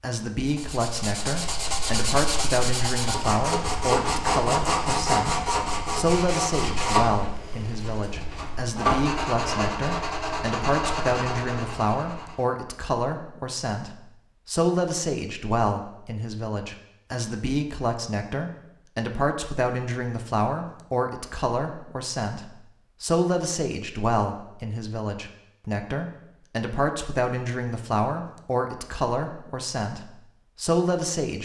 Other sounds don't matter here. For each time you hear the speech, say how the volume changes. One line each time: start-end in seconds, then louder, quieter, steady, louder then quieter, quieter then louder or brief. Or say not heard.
0.0-31.4 steady.